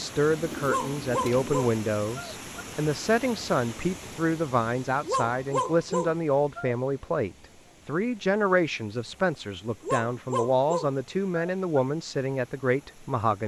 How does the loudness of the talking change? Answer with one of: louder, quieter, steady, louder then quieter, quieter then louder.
steady.